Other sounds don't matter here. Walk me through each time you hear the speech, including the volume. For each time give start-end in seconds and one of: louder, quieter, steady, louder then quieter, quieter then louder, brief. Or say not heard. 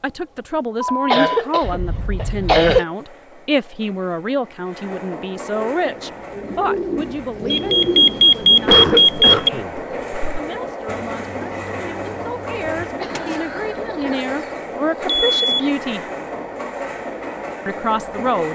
0.0-16.1 quieter then louder
17.6-18.5 brief.